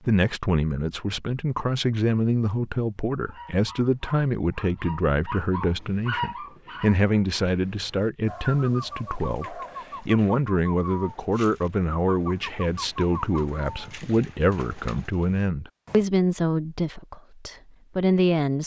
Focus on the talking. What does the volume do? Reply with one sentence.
The loudness of the talking stays about the same.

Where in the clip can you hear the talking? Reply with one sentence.
The talking can be heard from 0.1 to 18.6 s.